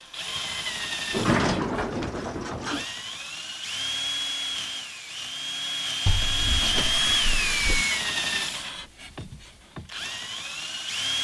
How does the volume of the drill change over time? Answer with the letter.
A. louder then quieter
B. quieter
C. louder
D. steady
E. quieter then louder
A.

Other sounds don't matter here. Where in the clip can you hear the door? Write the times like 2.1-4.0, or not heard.
1.1-2.9, 6.0-7.8.